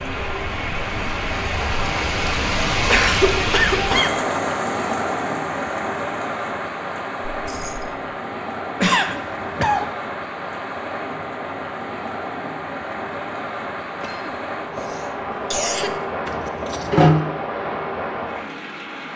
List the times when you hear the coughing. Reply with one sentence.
You can hear the coughing from 2.9 to 4.2 s, from 8.8 to 9.9 s and from 14.0 to 16.0 s.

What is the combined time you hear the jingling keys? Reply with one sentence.
The jingling keys can be heard for 2 seconds in total.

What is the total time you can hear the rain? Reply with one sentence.
The rain can be heard for 19 seconds in total.